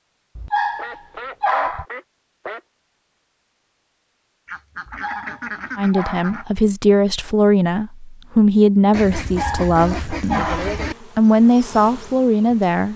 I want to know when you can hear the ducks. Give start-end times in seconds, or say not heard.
0.8-2.6, 4.5-6.5, 8.9-10.9.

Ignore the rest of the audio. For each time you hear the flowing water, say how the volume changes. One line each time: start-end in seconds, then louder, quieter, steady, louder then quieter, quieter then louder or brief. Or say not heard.
not heard.